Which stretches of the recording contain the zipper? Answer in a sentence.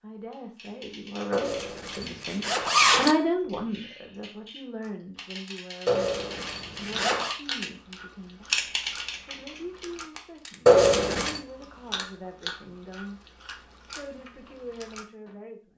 The zipper can be heard from 1.3 to 3.1 s, from 5.8 to 7.3 s and from 10.7 to 11.4 s.